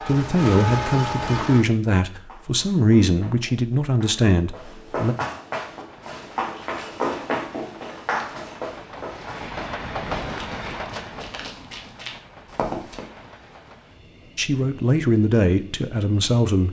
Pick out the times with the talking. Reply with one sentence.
The talking can be heard from 0.1 to 5.2 s and from 14.3 to 16.6 s.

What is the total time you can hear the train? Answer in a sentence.
The train can be heard for 13 seconds in total.